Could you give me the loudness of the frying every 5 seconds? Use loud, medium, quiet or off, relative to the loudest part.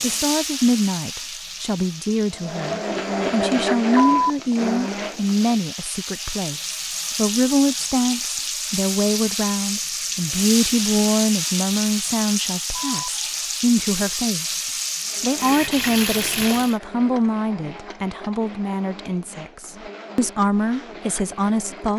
medium, loud, loud, loud, off.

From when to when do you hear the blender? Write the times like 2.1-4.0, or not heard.
2.3-5.7, 15.0-21.9.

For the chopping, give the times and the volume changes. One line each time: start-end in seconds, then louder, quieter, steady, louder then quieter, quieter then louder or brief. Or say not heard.
not heard.